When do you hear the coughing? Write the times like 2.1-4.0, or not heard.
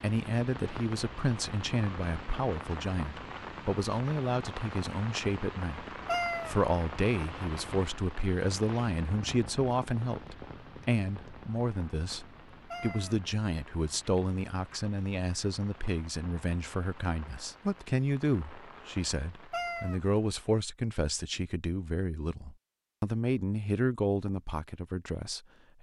not heard.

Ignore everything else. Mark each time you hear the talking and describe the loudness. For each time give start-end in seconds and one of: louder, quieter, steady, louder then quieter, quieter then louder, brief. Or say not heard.
0.0-25.7 steady.